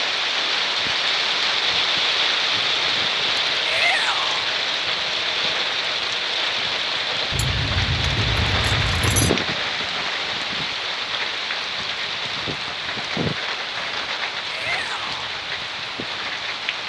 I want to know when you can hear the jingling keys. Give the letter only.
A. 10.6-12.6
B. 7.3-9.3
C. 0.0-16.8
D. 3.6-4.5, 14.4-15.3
B.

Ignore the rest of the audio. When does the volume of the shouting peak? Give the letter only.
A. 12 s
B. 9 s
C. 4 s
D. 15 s
C.